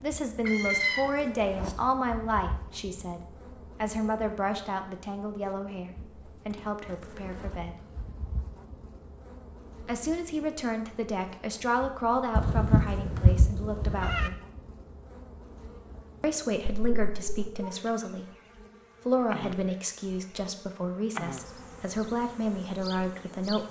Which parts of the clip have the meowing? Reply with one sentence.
You can hear the meowing from 0.5 to 1.8 s, from 12.3 to 14.3 s and from 16.7 to 17.7 s.